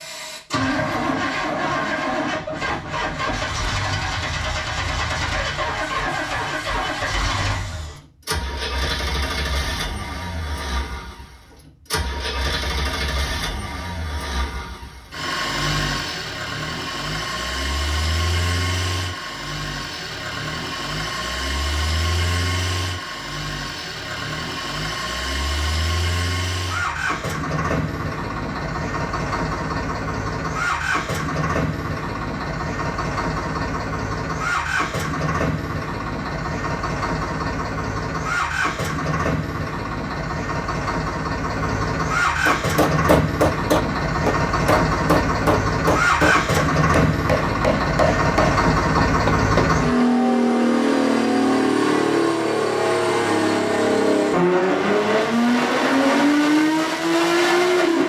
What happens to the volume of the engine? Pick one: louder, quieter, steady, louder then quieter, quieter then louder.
louder.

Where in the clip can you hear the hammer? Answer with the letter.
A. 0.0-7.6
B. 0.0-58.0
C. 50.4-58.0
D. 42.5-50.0
D.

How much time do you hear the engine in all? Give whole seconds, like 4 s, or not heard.
58 s.